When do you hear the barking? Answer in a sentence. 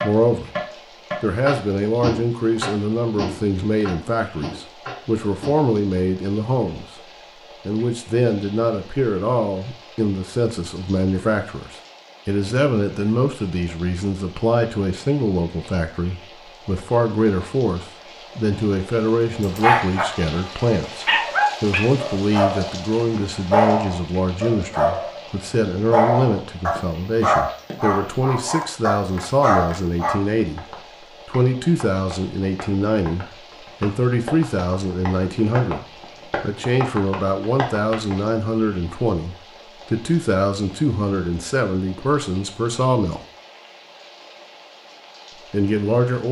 You can hear the barking from 19.4 to 22.9 s, from 23.5 to 25.2 s and from 25.9 to 30.1 s.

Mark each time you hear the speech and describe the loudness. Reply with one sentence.
The speech can be heard briefly from 0.0 to 0.5 s; from 1.2 to 43.2 s, at a steady volume; and briefly from 45.4 to 46.2 s.